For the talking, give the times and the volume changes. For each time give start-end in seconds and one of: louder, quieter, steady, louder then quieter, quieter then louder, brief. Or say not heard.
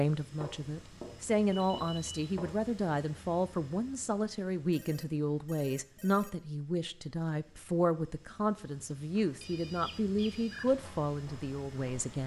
0.0-12.2 steady.